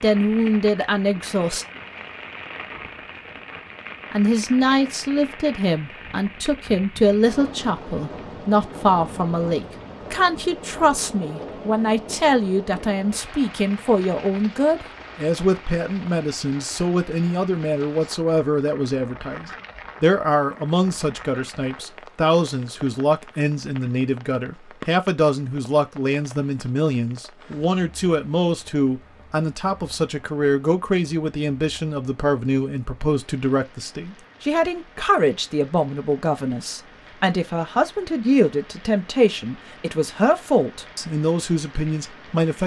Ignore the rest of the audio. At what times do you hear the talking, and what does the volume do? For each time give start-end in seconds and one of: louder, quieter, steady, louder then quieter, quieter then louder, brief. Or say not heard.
0.0-1.6 brief
4.1-42.6 steady.